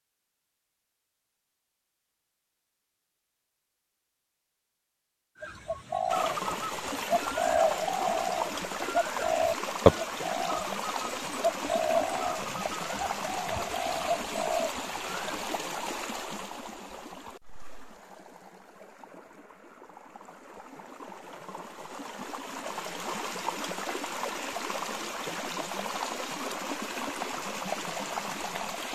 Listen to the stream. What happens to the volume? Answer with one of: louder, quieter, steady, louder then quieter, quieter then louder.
quieter then louder.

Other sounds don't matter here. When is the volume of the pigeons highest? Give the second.
10 s.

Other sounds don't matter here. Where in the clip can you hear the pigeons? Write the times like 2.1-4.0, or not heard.
5.4-15.4.